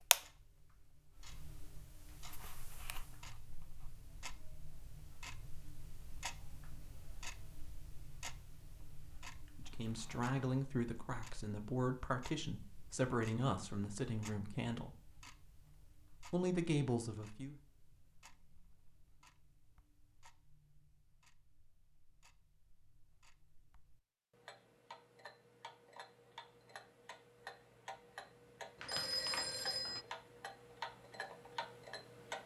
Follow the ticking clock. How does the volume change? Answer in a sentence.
The volume of the ticking clock goes down, then up.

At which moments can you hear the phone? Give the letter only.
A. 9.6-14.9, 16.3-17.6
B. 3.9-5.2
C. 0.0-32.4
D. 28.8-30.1
D.